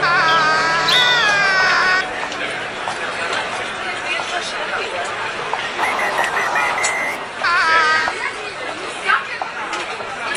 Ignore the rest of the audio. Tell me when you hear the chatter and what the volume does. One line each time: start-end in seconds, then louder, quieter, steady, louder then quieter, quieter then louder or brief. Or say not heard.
0.0-10.3 steady.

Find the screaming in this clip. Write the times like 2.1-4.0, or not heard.
0.0-2.0, 7.4-8.2.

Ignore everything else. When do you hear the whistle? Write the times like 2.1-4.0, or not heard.
0.2-1.1, 5.8-7.3.